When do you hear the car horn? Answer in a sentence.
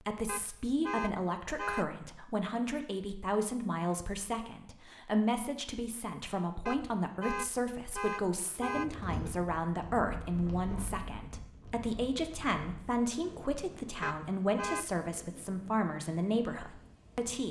The car horn can be heard from 0.2 to 2.0 s, from 6.7 to 8.9 s and from 14.0 to 15.1 s.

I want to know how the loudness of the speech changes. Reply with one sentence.
The volume of the speech stays about the same.